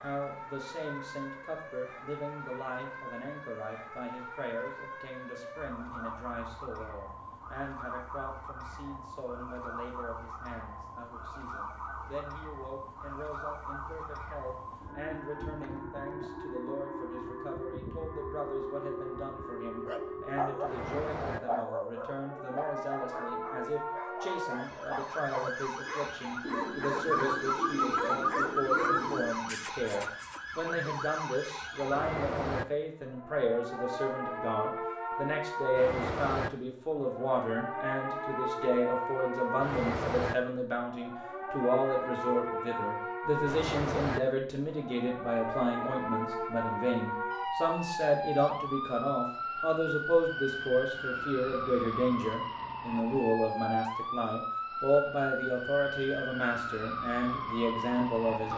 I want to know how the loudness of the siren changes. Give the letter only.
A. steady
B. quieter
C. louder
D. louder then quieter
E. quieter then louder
C.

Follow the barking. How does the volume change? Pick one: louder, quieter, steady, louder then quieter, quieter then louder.
quieter then louder.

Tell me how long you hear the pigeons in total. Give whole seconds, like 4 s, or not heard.
3 s.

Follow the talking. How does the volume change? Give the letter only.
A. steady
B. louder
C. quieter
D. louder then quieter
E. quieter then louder
B.